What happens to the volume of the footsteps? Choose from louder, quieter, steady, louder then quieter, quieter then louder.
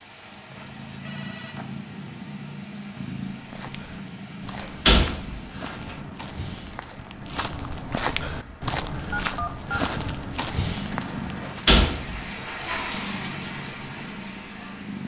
louder.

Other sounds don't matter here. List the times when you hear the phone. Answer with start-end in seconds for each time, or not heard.
0.5-1.7, 9.1-9.8.